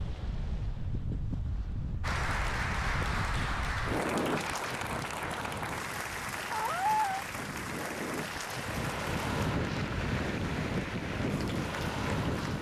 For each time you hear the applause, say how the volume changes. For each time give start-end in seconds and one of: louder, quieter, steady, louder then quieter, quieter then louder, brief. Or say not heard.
2.0-12.5 quieter.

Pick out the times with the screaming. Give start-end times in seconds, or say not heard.
6.5-7.2.